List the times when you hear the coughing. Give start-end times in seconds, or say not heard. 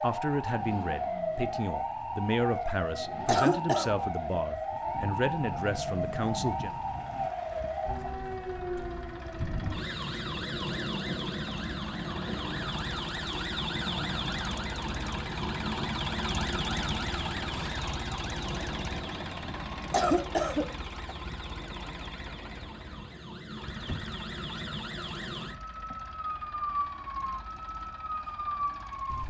3.2-3.9, 19.9-21.1.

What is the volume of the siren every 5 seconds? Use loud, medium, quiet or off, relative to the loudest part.
loud, loud, loud, loud, medium, loud.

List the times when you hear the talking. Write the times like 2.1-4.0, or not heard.
0.0-6.8.